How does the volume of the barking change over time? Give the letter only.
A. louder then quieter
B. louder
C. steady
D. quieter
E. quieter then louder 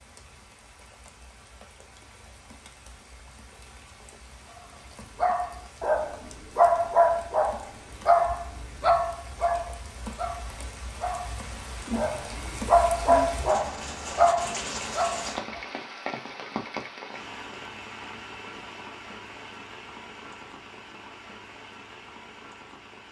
E.